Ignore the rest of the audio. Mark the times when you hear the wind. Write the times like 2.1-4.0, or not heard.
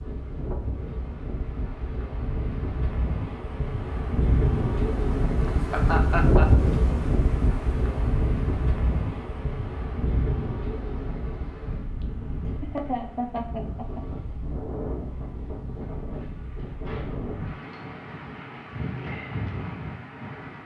0.0-20.6.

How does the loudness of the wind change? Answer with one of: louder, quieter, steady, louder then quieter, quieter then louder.
louder then quieter.